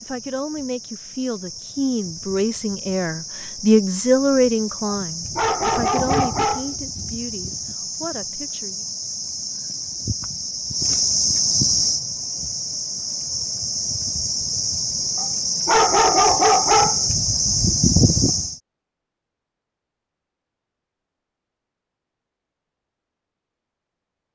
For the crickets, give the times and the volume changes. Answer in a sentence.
You can hear the crickets from 0.0 to 18.6 s, getting louder.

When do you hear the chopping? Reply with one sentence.
The chopping can't be heard in this clip.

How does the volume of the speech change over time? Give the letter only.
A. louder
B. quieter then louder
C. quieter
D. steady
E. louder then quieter
E.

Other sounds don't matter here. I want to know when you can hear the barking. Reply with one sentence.
You can hear the barking from 4.8 to 6.8 s and from 15.2 to 17.1 s.